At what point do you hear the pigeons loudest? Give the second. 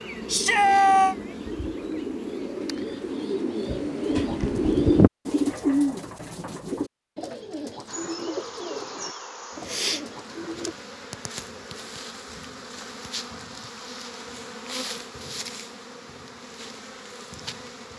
5 s.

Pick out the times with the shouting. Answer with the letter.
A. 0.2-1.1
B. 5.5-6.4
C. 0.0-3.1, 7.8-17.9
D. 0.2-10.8
A.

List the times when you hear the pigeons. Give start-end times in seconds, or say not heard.
0.2-10.8.